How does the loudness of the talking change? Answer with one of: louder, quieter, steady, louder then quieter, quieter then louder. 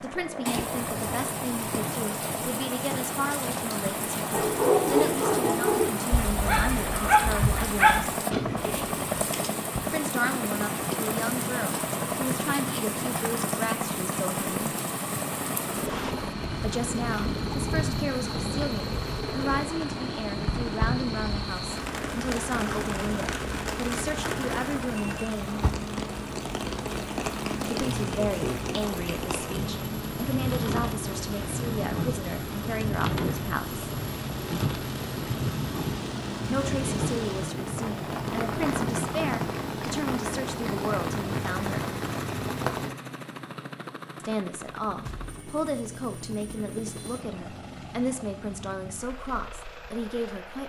steady.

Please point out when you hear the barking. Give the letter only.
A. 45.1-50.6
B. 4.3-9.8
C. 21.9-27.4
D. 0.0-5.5
B.